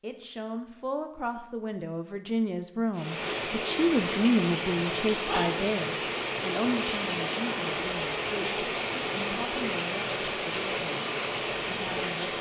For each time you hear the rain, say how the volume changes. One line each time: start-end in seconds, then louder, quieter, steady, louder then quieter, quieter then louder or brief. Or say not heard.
2.9-12.3 steady.